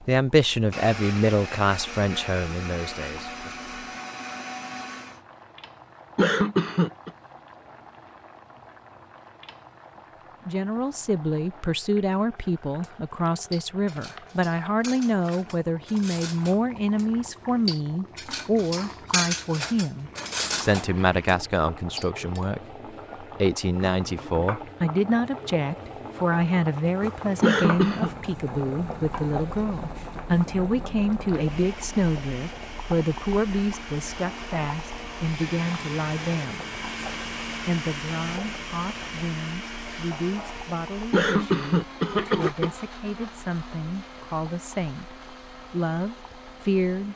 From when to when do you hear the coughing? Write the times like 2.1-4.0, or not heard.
6.2-7.1, 27.4-28.1, 41.1-42.8.